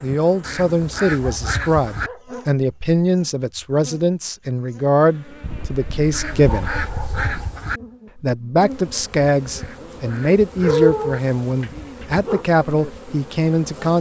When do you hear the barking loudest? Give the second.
11 s.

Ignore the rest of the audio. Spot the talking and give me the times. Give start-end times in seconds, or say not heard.
0.0-6.8, 8.2-13.9.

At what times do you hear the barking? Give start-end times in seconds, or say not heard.
1.1-2.5, 5.4-7.5, 10.6-12.4.